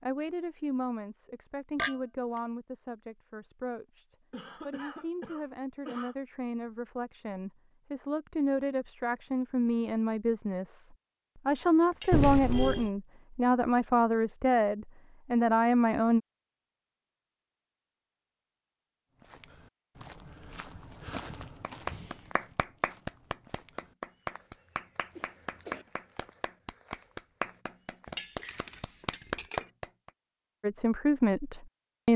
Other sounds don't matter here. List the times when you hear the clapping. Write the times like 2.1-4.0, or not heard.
21.1-30.1.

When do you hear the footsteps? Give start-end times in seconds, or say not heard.
19.1-28.1.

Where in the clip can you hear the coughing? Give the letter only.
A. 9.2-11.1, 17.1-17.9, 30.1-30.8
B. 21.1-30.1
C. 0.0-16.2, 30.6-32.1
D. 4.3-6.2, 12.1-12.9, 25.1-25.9
D.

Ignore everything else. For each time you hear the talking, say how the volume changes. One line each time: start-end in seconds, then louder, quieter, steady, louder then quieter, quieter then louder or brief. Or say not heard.
0.0-16.2 louder
30.6-32.1 brief.